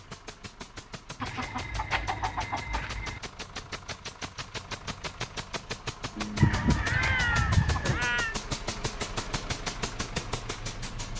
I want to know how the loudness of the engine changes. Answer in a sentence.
The loudness of the engine goes up.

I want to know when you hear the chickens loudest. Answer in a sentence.
The loudest moment of the chickens is at 7 seconds.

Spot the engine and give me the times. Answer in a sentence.
You can hear the engine from 0.0 to 11.1 s.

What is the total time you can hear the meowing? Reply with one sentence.
You can hear the meowing for 2 seconds altogether.